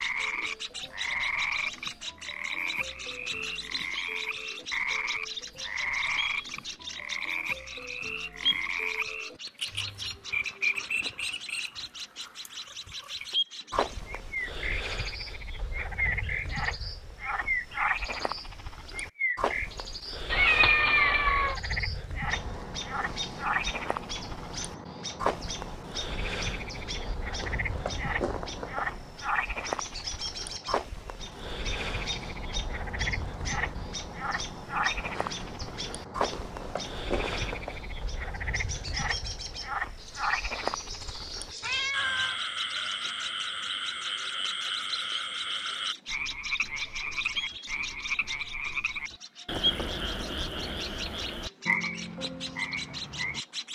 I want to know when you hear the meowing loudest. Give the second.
21 s.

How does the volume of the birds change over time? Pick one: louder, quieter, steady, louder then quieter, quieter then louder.
steady.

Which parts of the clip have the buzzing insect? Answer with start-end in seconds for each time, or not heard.
not heard.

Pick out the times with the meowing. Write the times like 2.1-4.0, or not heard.
20.3-21.6, 41.6-42.4.